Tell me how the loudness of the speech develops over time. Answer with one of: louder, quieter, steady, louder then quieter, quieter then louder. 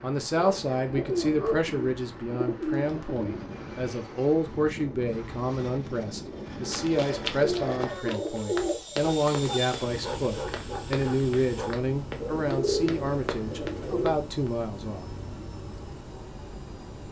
steady.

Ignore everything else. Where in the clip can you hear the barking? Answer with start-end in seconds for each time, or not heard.
0.3-1.6, 8.9-11.8.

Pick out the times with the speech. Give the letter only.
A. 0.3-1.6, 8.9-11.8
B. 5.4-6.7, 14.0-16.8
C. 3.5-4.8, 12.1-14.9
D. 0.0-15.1
D.